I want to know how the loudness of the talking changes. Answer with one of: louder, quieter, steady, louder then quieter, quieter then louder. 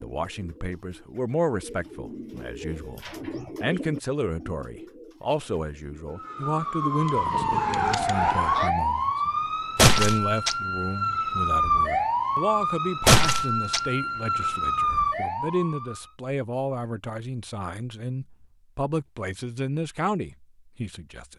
steady.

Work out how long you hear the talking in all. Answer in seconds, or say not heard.
21 s.